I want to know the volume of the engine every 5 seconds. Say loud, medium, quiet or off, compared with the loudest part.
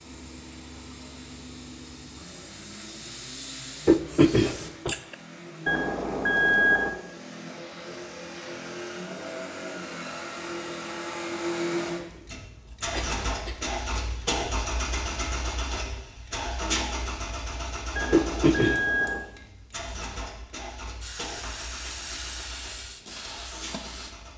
quiet, medium, loud, loud, medium.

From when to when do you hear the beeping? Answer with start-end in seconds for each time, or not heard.
5.7-6.9, 17.9-19.2.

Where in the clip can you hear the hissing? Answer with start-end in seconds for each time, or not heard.
0.0-4.7, 21.0-24.2.